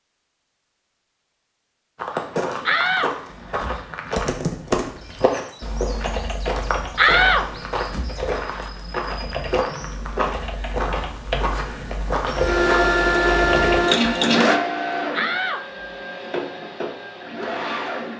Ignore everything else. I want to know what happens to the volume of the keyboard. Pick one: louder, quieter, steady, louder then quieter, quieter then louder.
quieter then louder.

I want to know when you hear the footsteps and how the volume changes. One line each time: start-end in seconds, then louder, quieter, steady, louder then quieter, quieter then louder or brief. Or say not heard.
1.9-12.9 steady.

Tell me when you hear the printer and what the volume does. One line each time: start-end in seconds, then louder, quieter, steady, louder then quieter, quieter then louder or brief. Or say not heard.
12.3-18.1 quieter.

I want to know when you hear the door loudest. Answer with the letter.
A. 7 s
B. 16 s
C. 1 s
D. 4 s
A.